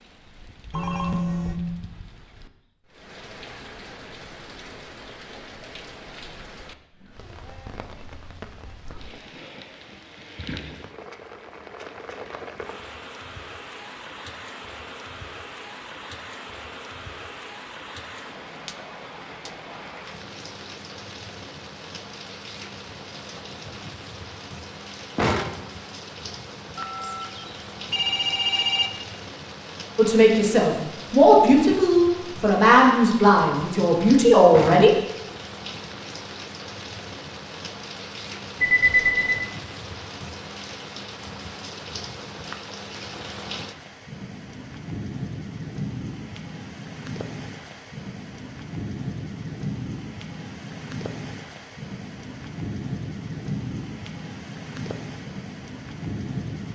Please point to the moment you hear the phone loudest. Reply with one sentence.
The volume of the phone peaks at 39 seconds.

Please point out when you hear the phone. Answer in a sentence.
The phone can be heard from 0.7 to 1.6 s, from 26.8 to 28.9 s and from 38.6 to 39.5 s.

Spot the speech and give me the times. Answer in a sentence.
You can hear the speech from 29.9 to 34.9 s.